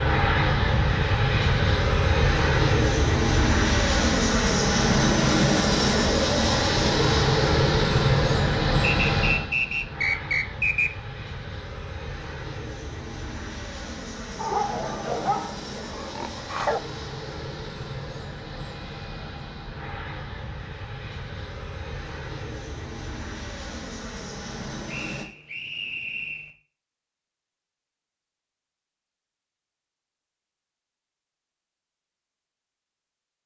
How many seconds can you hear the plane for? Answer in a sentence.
The plane can be heard for 25 seconds in total.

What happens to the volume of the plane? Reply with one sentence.
The loudness of the plane goes down.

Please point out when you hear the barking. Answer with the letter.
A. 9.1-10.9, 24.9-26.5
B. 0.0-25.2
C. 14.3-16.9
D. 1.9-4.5
C.